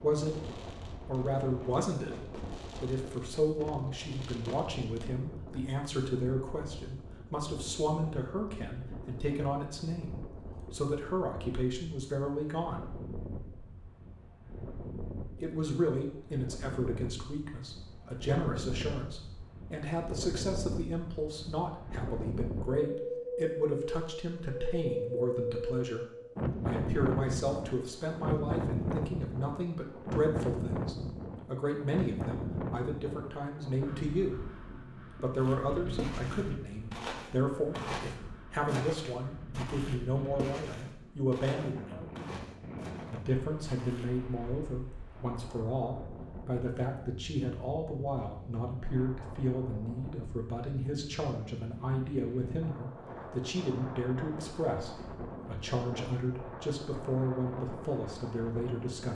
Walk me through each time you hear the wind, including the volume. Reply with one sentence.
The wind can be heard from 0.0 to 59.0 s, getting louder then quieter.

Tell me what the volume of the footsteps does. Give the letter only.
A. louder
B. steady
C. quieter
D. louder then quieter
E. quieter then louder
C.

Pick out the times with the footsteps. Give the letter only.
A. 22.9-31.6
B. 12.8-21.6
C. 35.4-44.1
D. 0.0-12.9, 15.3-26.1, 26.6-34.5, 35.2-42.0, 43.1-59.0
C.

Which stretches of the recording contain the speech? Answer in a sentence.
The speech can be heard from 0.0 to 12.9 s, from 15.3 to 26.1 s, from 26.6 to 34.5 s, from 35.2 to 42.0 s and from 43.1 to 59.0 s.